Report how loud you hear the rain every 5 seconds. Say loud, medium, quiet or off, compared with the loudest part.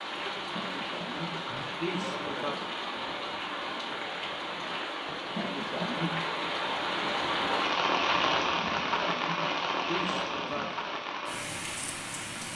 medium, loud, medium.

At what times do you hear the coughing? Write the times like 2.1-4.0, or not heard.
0.6-2.6, 5.3-6.3, 8.6-10.8.